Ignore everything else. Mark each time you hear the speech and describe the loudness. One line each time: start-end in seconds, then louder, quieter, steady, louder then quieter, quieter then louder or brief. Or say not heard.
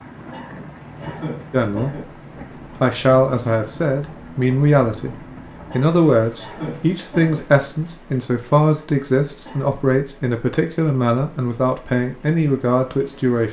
1.5-2.0 brief
2.8-13.4 steady.